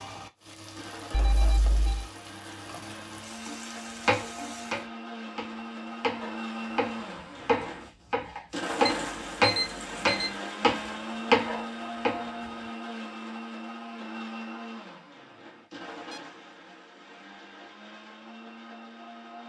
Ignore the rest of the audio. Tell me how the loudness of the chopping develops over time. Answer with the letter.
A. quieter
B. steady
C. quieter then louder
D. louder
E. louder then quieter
D.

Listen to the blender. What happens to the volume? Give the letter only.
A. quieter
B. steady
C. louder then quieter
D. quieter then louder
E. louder
C.